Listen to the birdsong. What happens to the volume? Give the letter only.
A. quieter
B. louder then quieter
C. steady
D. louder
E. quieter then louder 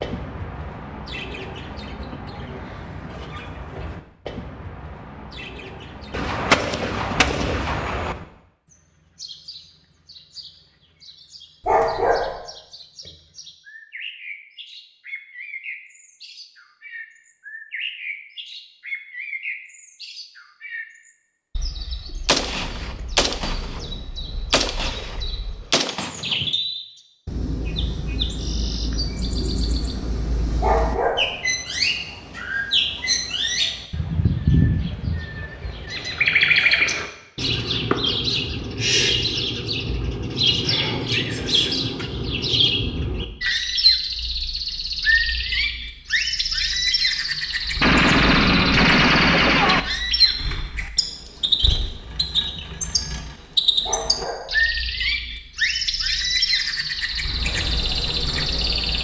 D.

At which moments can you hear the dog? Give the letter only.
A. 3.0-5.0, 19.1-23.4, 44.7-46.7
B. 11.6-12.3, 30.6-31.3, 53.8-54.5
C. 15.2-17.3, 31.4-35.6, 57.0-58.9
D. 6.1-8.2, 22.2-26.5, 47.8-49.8
B.